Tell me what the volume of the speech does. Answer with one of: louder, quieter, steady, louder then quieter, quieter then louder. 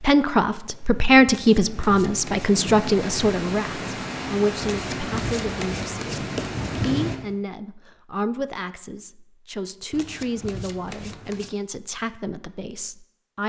quieter.